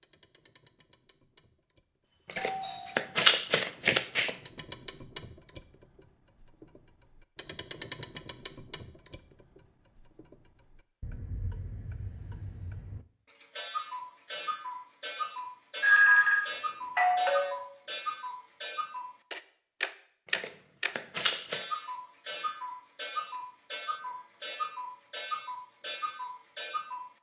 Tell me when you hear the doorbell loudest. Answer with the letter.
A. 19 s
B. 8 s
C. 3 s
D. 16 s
D.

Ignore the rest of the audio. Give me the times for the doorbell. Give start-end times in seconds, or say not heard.
2.4-3.0, 15.8-17.6.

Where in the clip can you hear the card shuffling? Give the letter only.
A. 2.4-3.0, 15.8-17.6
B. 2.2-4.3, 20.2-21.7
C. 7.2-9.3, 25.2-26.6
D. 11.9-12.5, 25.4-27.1
B.